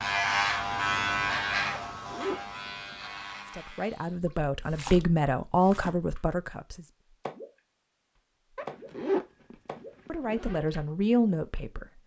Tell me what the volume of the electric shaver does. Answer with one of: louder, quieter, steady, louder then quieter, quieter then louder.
quieter.